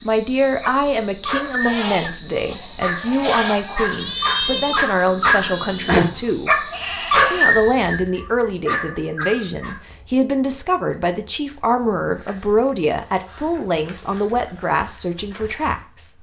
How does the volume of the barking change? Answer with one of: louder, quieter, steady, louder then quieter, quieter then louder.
louder then quieter.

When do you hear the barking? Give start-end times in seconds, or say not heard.
0.6-9.8.